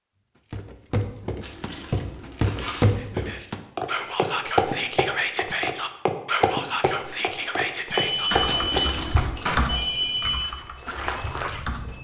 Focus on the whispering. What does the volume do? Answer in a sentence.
The loudness of the whispering goes down.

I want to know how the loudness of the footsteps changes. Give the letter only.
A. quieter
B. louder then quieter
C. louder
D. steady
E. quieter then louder
A.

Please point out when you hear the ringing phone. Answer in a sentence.
You can hear the ringing phone from 7.9 to 10.4 s.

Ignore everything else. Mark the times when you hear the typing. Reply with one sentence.
The typing can be heard from 8.3 to 11.9 s.